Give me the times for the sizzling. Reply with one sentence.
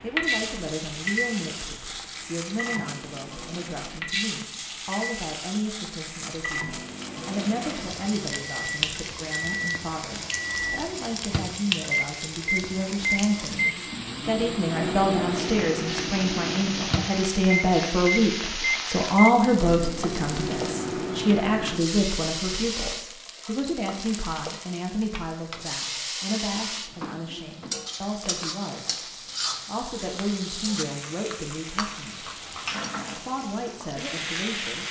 The sizzling can be heard from 0.2 to 34.8 s.